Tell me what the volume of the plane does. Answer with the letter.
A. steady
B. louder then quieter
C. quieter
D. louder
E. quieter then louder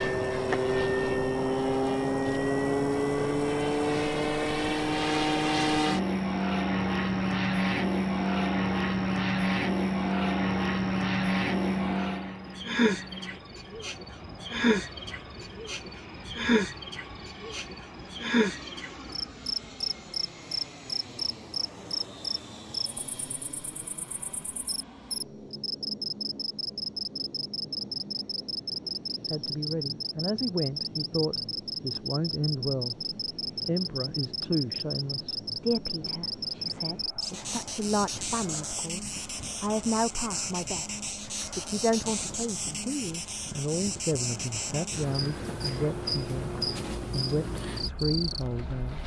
C.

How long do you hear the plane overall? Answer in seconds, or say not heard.
49 s.